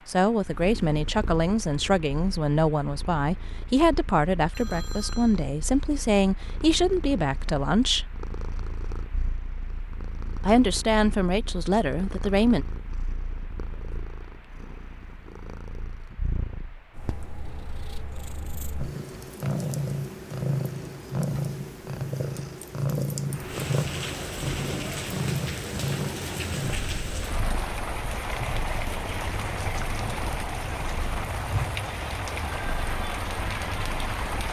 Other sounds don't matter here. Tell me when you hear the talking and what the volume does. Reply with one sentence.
The talking can be heard from 0.1 to 8.1 s, at a steady volume; and briefly from 10.4 to 12.7 s.